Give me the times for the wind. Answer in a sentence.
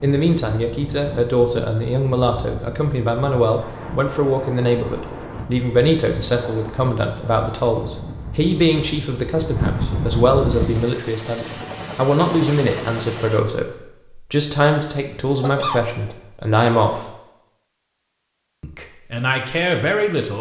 You can hear the wind from 0.1 to 10.9 s.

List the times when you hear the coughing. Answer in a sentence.
You can hear the coughing from 15.3 to 16.1 s.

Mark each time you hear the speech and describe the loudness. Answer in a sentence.
You can hear the speech from 0.0 to 17.1 s, at a steady volume; and briefly from 18.6 to 20.3 s.